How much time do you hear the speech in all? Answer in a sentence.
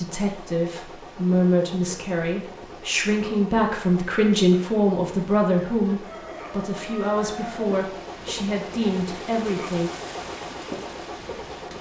You can hear the speech for 10 seconds altogether.